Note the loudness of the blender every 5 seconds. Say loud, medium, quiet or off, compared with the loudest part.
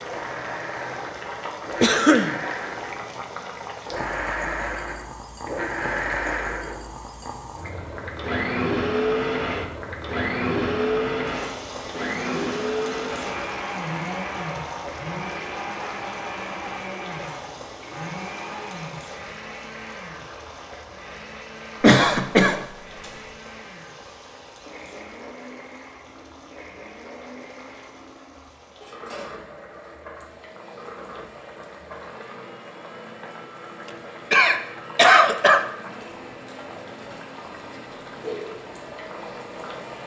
medium, loud, loud, medium, quiet, quiet, quiet, quiet.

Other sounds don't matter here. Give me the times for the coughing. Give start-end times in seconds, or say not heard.
1.8-2.4, 21.8-22.6, 34.3-35.6.